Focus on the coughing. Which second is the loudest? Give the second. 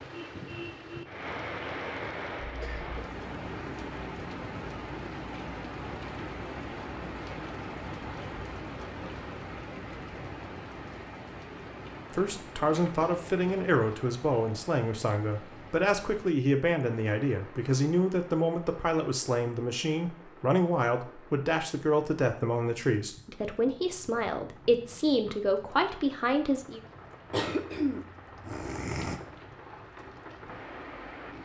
28 s.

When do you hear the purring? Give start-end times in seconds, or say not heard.
not heard.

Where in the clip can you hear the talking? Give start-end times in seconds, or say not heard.
12.1-26.8.